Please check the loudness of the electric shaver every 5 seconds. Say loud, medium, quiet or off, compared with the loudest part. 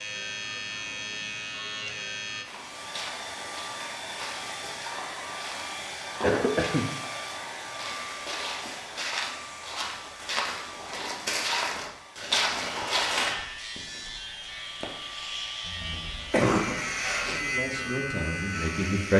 loud, off, medium, loud.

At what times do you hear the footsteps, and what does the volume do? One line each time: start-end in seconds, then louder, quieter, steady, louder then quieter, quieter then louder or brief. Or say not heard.
2.4-13.3 louder.